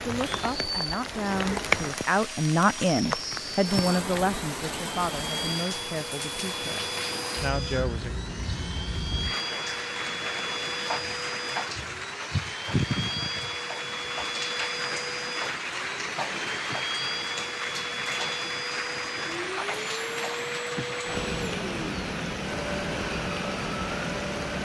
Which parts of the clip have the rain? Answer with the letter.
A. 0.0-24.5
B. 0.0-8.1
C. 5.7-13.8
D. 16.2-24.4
A.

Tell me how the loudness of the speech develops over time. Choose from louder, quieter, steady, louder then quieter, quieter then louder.
louder then quieter.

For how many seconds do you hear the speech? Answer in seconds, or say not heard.
8 s.